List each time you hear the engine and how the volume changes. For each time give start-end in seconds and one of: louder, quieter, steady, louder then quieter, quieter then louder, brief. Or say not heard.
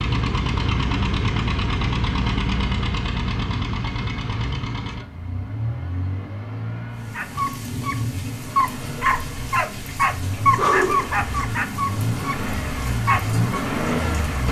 0.0-14.4 quieter then louder.